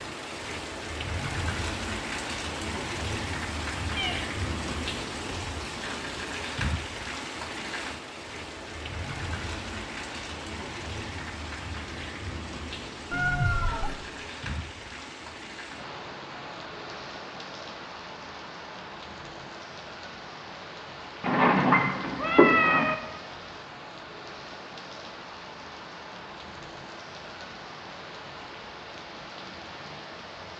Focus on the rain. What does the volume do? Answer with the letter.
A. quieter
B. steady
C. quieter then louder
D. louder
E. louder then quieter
A.